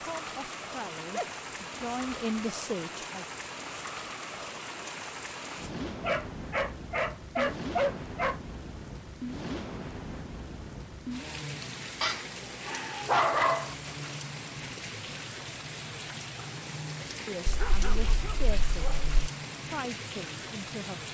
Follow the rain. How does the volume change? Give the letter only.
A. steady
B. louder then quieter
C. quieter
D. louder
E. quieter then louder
A.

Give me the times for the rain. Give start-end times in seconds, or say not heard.
0.0-21.0.